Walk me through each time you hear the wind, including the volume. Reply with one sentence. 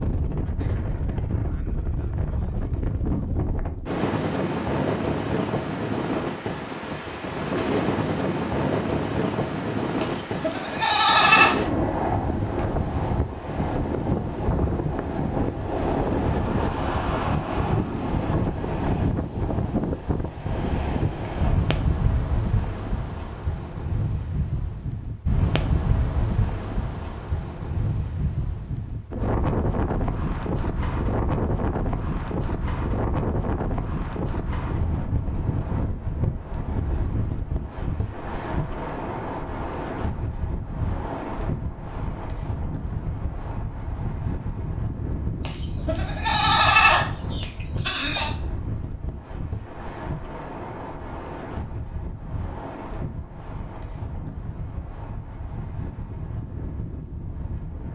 You can hear the wind from 0.0 to 57.9 s, getting quieter.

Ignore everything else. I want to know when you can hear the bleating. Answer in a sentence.
The bleating can be heard from 10.0 to 11.6 s and from 45.5 to 48.3 s.